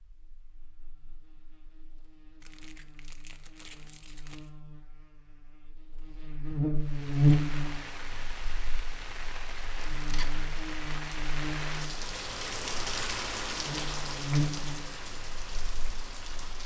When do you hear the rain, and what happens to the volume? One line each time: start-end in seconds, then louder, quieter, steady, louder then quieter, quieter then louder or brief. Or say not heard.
6.8-16.6 louder then quieter.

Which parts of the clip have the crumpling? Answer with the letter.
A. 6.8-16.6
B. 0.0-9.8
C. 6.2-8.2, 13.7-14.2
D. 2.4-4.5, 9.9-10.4
D.